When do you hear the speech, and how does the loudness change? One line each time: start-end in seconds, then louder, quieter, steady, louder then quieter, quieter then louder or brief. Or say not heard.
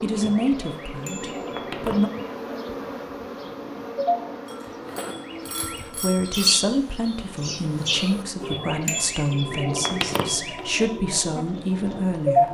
0.0-2.1 brief
5.8-12.4 steady.